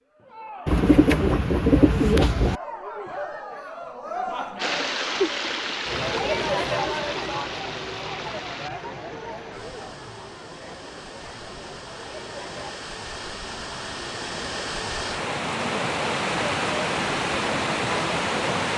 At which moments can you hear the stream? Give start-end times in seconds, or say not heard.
4.5-18.7.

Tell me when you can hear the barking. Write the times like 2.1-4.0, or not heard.
not heard.